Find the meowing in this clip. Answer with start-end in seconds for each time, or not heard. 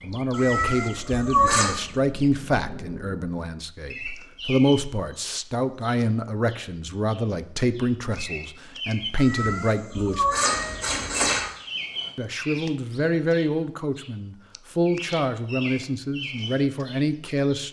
0.3-1.8, 9.2-11.5.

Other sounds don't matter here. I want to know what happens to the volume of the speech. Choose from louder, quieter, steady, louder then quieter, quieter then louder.
steady.